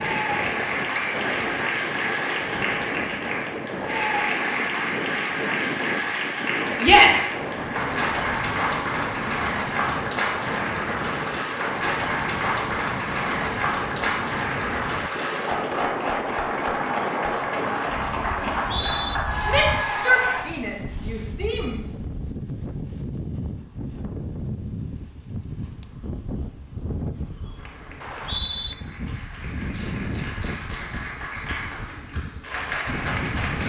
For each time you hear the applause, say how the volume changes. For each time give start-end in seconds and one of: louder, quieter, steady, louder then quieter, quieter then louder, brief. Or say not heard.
0.0-20.4 steady
27.6-33.6 louder.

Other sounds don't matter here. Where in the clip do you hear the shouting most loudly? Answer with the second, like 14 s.
7 s.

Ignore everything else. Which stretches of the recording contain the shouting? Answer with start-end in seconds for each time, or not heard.
6.8-7.3, 19.4-21.8.